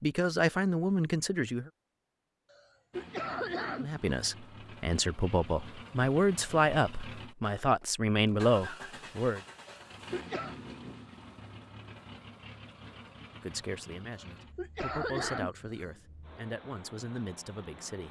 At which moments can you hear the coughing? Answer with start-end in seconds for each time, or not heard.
2.5-4.2, 9.7-10.6, 14.1-15.8.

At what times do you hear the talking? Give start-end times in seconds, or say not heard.
0.0-1.7, 3.8-9.4, 13.4-18.0.